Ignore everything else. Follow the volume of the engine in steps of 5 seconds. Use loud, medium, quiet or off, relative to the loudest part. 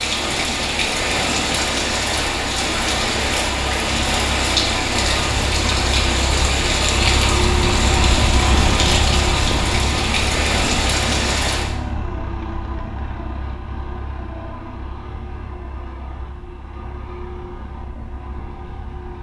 medium, loud, medium, quiet.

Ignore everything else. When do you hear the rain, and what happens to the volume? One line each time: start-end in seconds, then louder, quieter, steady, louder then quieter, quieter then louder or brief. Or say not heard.
0.0-11.8 steady.